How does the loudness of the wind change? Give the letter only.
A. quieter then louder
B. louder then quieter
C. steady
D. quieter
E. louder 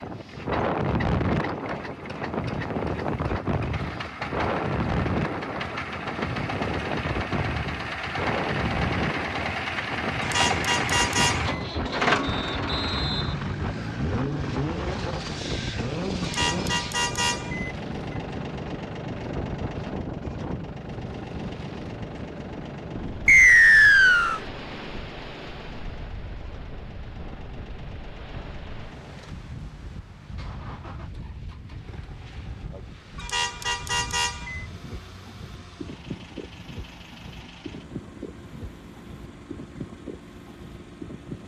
D.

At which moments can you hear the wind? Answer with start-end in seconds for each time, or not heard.
0.0-41.4.